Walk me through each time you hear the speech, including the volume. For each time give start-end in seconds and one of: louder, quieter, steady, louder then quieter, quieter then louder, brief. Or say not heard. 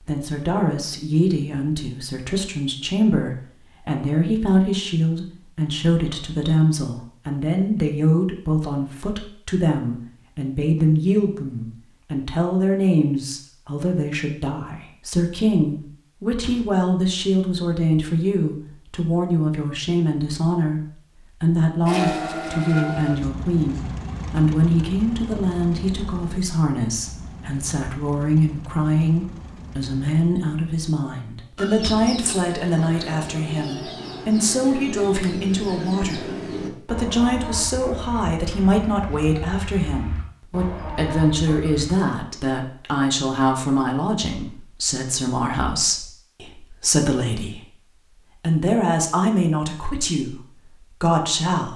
0.0-51.7 steady.